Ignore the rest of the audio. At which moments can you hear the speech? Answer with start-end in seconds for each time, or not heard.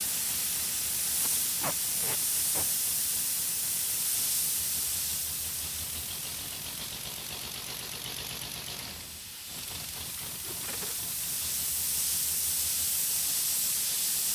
not heard.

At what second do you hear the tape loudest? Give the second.
2 s.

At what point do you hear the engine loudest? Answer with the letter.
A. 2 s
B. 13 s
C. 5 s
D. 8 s
D.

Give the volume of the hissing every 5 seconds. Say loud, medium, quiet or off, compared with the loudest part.
loud, medium, loud.